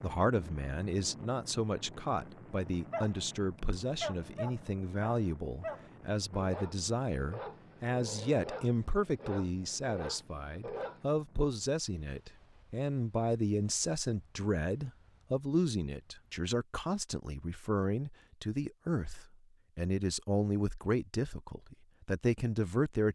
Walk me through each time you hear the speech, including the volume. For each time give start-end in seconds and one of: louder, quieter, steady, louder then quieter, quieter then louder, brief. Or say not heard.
0.0-23.1 steady.